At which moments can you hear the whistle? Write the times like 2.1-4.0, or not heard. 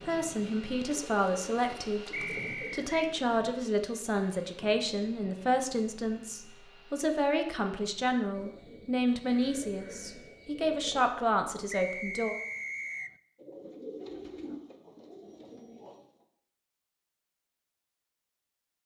2.1-3.0, 11.7-13.2.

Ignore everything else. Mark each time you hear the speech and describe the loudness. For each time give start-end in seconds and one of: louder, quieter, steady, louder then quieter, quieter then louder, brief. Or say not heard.
0.0-12.3 steady.